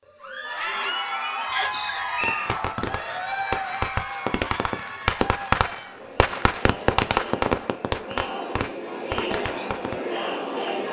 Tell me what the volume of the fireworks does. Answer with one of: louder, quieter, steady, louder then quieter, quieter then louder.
louder then quieter.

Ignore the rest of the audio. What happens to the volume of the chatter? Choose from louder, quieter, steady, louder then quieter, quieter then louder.
quieter then louder.